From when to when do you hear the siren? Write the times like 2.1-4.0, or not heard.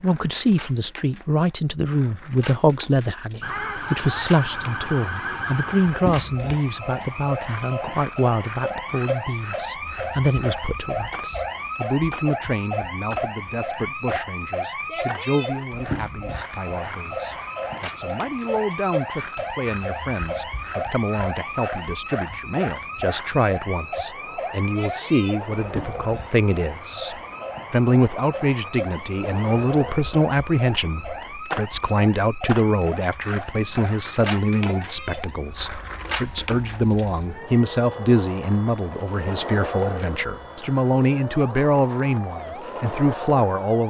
3.4-43.8.